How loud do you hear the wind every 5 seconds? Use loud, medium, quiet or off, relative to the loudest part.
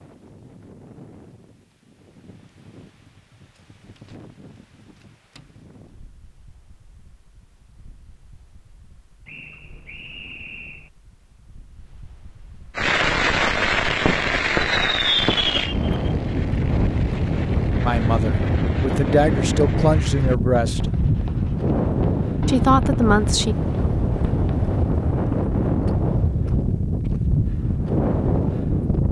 quiet, quiet, quiet, loud, loud, loud.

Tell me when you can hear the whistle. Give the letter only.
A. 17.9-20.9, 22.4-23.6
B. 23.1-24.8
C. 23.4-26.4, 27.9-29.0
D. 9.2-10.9
D.